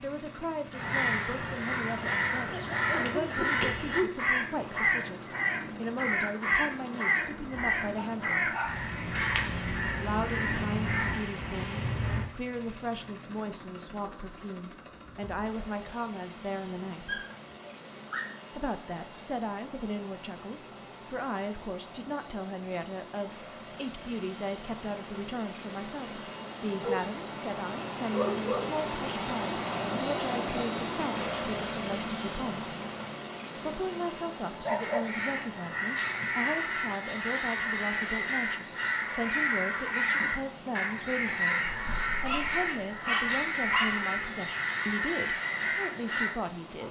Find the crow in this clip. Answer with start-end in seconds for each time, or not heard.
0.7-12.3, 34.8-46.4.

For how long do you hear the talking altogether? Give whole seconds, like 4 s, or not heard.
43 s.